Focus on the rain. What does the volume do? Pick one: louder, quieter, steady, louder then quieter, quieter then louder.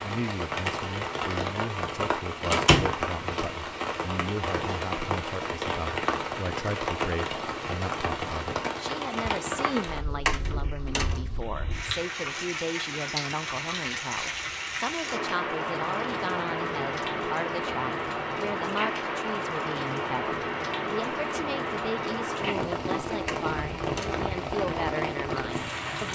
steady.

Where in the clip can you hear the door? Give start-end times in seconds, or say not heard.
2.5-3.0, 10.2-11.2, 23.2-24.2.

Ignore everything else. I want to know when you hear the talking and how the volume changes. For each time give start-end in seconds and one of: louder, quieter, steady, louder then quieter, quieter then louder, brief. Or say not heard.
0.0-26.1 steady.